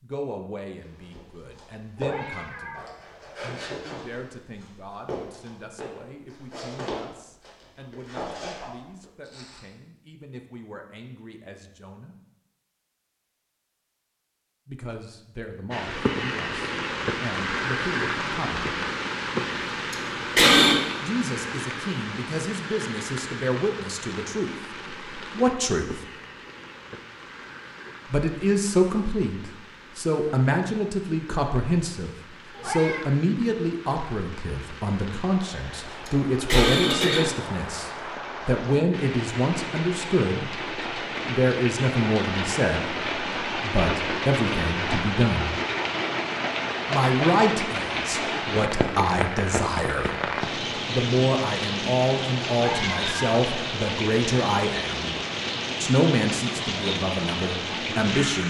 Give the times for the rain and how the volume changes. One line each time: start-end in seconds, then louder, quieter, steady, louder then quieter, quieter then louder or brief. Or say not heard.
15.7-58.4 quieter then louder.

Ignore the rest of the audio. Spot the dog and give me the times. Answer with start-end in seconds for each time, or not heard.
not heard.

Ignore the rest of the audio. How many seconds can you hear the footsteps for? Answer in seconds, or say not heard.
9 s.